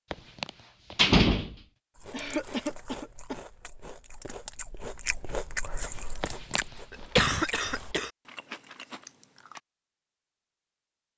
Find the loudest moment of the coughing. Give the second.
7 s.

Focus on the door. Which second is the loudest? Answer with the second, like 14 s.
1 s.